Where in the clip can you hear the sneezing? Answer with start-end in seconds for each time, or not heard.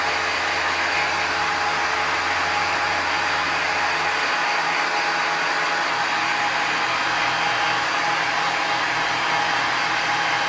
not heard.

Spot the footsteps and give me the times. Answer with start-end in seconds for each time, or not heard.
not heard.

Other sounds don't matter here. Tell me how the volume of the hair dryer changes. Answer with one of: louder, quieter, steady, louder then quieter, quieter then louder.
steady.